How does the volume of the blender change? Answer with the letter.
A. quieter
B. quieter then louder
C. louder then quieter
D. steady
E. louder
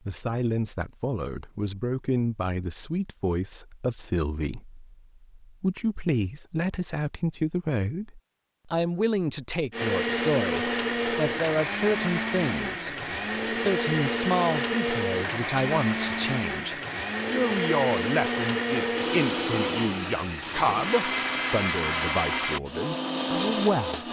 D.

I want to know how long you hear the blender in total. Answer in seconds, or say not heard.
14 s.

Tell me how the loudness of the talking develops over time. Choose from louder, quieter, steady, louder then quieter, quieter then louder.
steady.